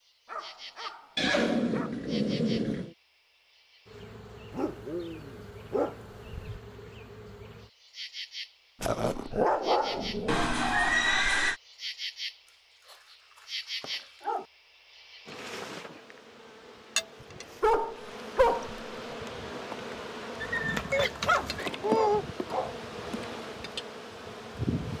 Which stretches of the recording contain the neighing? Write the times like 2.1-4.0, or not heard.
1.1-3.0, 10.2-11.6, 20.4-21.7.